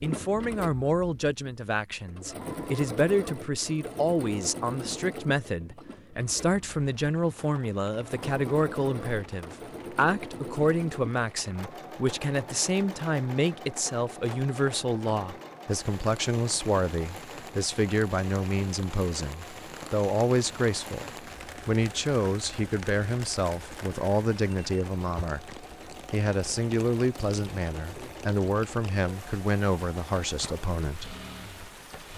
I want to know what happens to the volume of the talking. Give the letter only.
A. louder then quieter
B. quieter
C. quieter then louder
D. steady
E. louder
D.